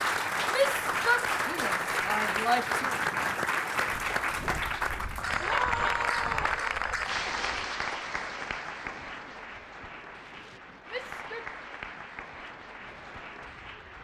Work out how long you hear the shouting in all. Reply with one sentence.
The shouting can be heard for 4 seconds in total.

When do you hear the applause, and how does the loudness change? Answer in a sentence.
The applause can be heard from 0.0 to 13.9 s, getting quieter.